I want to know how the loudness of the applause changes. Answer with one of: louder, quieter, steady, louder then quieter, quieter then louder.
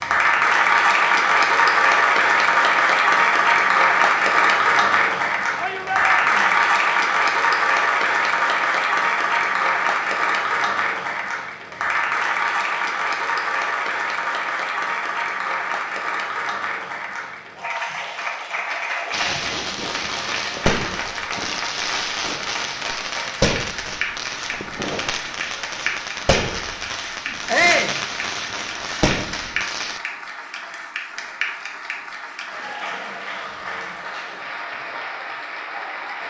quieter.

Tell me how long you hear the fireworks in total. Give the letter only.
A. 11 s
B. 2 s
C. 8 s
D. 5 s
A.